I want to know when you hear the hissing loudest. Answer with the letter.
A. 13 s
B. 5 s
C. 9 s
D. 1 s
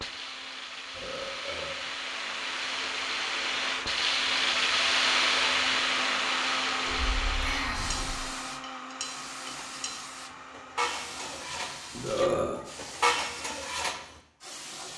B.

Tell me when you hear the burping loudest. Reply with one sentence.
The volume of the burping peaks at 12 seconds.